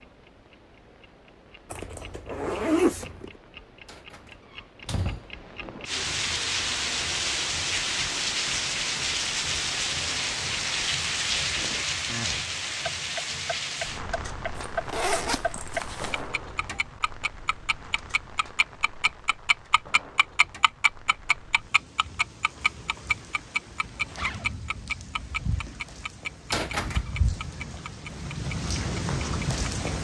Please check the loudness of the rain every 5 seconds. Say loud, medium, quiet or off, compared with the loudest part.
off, loud, loud, quiet, quiet, medium.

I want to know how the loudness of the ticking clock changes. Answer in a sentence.
The loudness of the ticking clock goes up.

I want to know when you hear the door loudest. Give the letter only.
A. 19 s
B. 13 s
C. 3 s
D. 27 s
D.